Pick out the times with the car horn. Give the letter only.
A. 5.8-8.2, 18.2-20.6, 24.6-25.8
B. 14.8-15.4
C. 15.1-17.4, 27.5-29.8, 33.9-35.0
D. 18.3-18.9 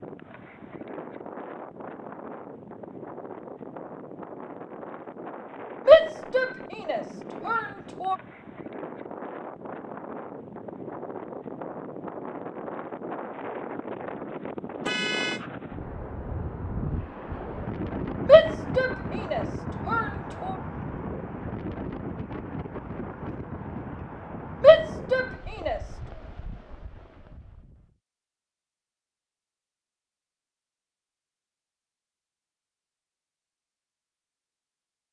B.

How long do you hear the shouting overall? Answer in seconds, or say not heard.
6 s.